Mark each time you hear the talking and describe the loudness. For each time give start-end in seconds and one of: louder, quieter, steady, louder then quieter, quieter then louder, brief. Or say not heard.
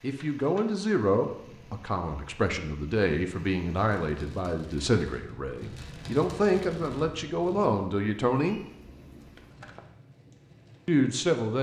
0.0-8.6 steady
10.8-11.5 brief.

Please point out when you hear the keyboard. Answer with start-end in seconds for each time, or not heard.
not heard.